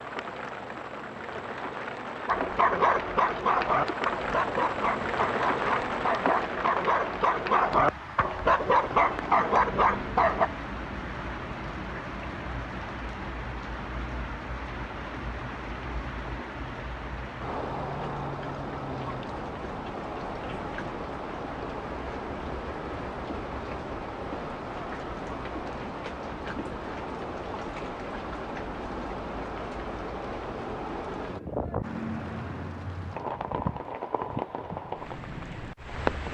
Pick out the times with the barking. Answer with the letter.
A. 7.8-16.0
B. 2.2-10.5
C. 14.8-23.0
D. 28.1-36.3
B.